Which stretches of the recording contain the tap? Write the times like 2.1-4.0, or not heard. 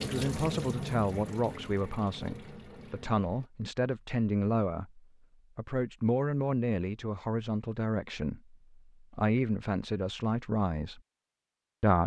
0.0-3.5.